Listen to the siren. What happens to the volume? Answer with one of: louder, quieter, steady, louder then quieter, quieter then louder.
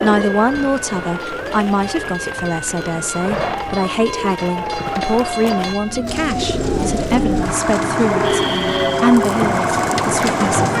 louder.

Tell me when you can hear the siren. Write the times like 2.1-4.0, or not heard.
0.1-10.7.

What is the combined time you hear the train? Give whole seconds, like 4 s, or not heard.
11 s.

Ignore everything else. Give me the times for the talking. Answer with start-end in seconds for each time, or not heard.
0.0-10.7.